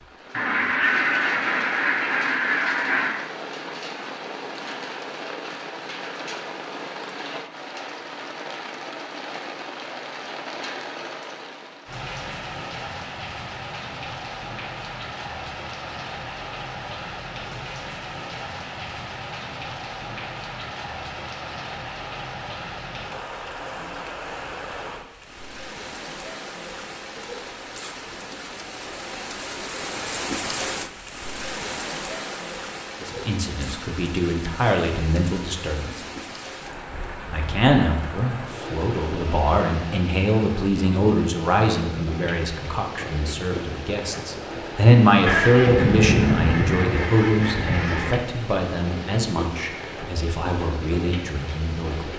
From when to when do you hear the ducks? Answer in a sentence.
You can hear the ducks from 0.3 to 3.1 s and from 45.2 to 48.1 s.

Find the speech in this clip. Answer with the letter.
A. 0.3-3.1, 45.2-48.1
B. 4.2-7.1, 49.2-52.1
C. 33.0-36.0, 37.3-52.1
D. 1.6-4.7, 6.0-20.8
C.